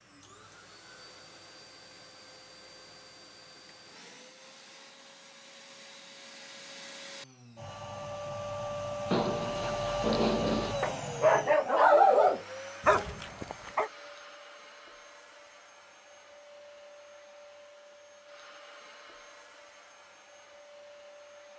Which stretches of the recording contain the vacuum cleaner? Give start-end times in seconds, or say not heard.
0.0-21.5.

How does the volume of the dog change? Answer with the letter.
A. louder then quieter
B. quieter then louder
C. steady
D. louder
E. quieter
A.